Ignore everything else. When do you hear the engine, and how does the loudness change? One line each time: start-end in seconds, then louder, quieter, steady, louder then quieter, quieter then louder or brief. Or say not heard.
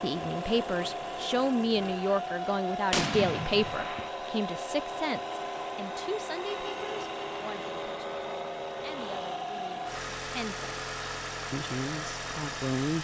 0.0-13.0 steady.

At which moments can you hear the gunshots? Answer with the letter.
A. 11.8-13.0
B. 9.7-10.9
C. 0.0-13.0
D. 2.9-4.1
D.